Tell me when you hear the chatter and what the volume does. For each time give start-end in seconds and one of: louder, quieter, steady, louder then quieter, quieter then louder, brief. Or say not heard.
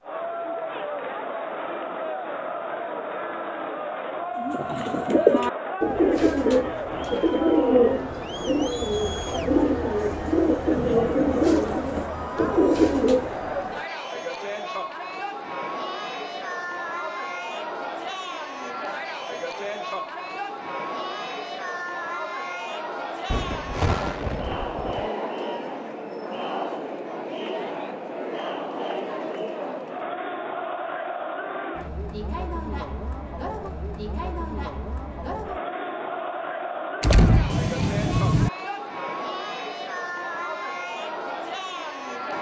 0.0-42.3 steady.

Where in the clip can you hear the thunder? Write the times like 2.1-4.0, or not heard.
10.7-12.6, 23.3-25.1, 37.0-38.5.